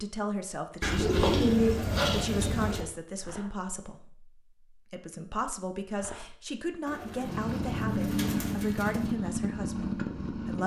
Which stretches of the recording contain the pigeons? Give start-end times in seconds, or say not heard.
0.8-2.9, 6.8-9.2.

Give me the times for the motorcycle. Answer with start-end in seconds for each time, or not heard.
7.2-10.6.